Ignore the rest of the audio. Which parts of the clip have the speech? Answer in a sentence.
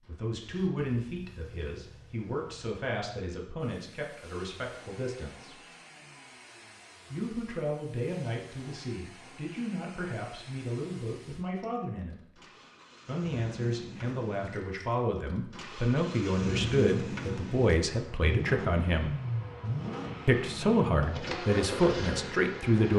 You can hear the speech from 0.1 to 5.6 s, from 7.1 to 12.4 s, from 13.1 to 19.1 s and from 20.2 to 22.9 s.